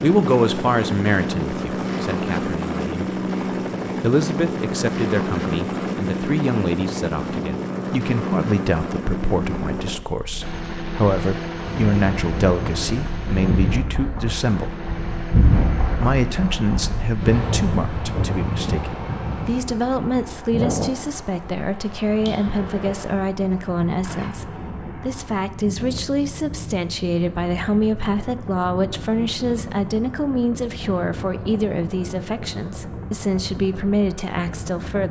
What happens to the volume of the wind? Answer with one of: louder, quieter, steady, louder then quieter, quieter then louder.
quieter.